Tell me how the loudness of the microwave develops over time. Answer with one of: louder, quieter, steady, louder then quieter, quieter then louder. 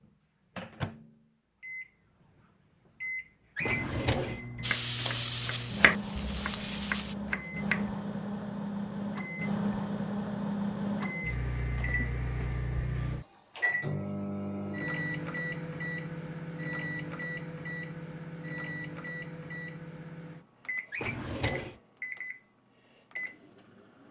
louder then quieter.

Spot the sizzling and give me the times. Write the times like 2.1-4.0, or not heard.
4.6-7.2.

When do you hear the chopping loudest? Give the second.
6 s.